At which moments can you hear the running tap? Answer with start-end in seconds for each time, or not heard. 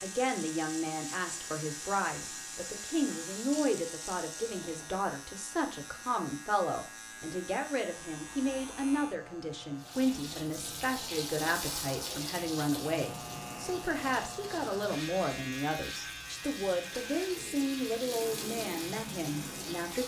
0.0-5.0, 9.8-20.0.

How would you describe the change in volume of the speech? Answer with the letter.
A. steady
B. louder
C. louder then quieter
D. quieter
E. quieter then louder
A.